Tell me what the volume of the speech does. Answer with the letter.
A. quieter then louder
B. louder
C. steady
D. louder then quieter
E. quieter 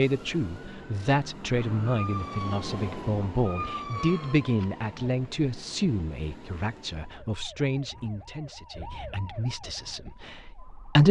E.